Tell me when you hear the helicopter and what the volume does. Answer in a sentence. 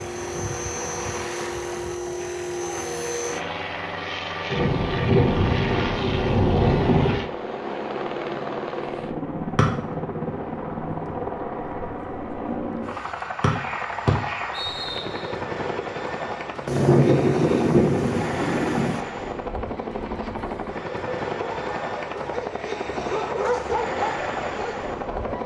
You can hear the helicopter from 0.0 to 25.4 s, at a steady volume.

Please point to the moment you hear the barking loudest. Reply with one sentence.
The loudest moment of the barking is at 24 seconds.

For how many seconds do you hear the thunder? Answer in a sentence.
You can hear the thunder for 5 seconds altogether.